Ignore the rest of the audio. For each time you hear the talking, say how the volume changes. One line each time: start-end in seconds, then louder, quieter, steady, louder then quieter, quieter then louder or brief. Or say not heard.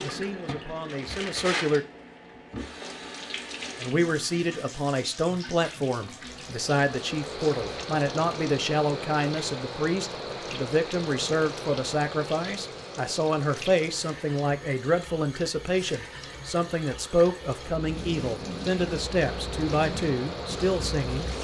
0.0-1.9 brief
3.8-21.3 steady.